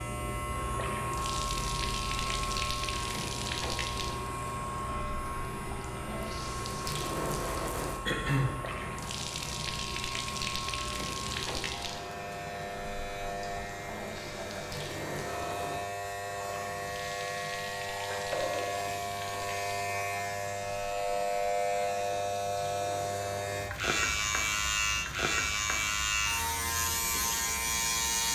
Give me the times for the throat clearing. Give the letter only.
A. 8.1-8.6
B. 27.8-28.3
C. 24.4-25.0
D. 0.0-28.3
A.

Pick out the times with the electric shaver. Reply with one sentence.
You can hear the electric shaver from 0.0 to 28.3 s.